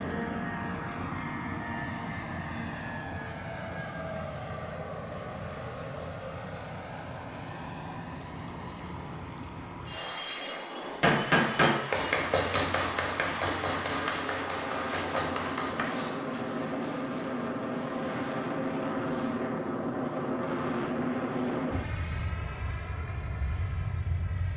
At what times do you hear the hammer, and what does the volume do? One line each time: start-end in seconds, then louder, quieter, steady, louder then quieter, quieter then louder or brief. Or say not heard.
11.0-16.1 quieter.